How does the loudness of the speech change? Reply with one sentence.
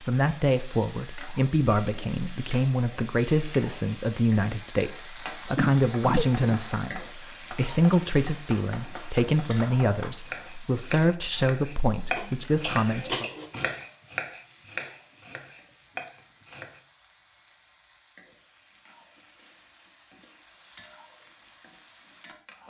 The volume of the speech stays about the same.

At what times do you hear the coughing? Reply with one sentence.
The coughing can be heard from 5.5 to 6.6 s and from 12.2 to 13.5 s.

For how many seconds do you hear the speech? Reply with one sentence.
The speech can be heard for 13 seconds in total.